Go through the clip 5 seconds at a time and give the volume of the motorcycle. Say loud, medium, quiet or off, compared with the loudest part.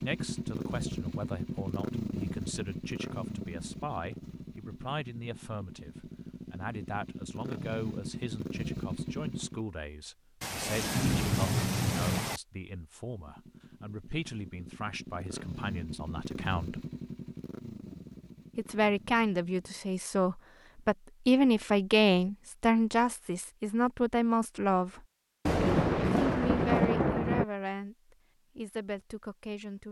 loud, loud, quiet, medium, off, off.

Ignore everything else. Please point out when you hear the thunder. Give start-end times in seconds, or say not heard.
10.4-12.4, 25.4-27.4.